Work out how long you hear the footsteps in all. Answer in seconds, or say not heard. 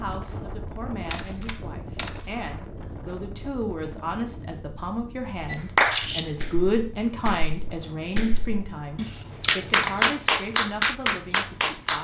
not heard.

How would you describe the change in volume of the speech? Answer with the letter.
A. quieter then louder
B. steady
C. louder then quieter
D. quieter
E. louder
C.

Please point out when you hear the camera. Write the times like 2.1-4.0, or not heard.
1.1-2.2, 5.5-6.3, 9.3-10.2.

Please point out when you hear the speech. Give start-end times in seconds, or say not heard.
0.0-12.0.